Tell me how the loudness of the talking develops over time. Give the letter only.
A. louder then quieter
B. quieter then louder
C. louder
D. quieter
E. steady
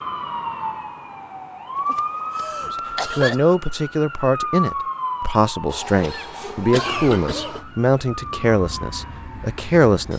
E.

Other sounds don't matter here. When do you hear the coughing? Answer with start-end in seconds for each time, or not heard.
1.8-3.4, 5.7-7.7.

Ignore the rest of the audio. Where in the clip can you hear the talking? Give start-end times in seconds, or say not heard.
2.7-10.1.